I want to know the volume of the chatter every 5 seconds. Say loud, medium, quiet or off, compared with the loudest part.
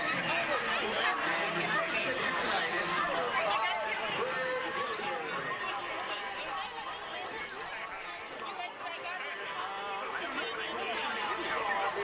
loud, medium, loud.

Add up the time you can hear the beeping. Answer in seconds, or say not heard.
4 s.